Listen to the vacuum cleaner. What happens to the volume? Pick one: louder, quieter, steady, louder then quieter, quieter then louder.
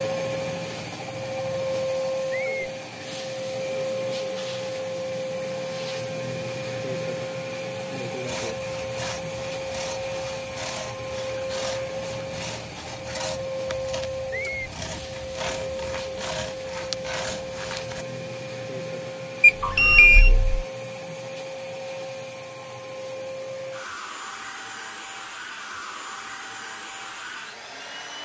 quieter.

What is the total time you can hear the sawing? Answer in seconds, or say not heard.
10 s.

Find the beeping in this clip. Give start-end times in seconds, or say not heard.
19.4-20.5.